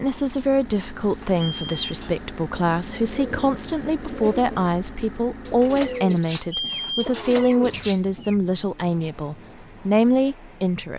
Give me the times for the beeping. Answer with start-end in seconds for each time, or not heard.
1.1-2.2, 5.9-7.3.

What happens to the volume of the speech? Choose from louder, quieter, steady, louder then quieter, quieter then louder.
steady.